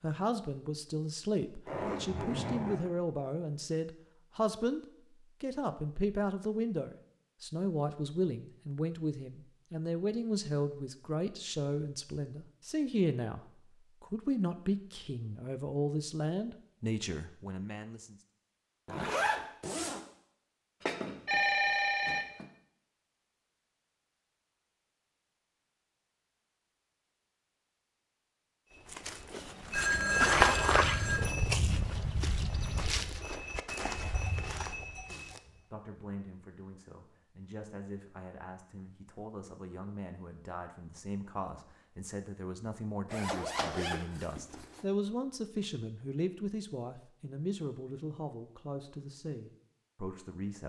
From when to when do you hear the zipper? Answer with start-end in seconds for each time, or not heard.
1.6-2.9, 18.9-20.0, 43.1-44.8.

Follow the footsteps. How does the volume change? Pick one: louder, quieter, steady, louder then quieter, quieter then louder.
quieter.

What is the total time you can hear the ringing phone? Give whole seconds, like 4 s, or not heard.
3 s.